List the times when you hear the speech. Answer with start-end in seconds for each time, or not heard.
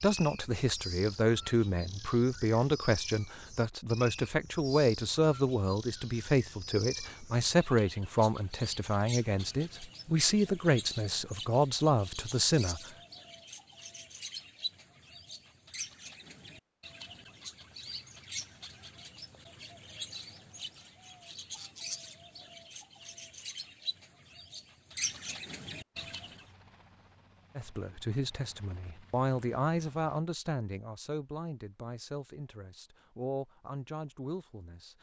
0.0-12.8, 27.6-34.9.